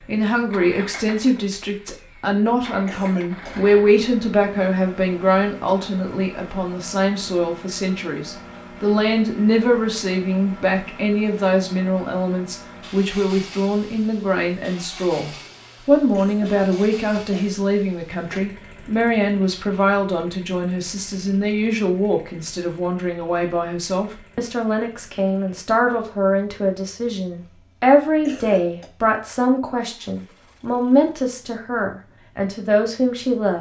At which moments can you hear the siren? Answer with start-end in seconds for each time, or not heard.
not heard.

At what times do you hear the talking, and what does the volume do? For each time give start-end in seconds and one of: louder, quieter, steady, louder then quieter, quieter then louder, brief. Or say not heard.
0.0-33.5 steady.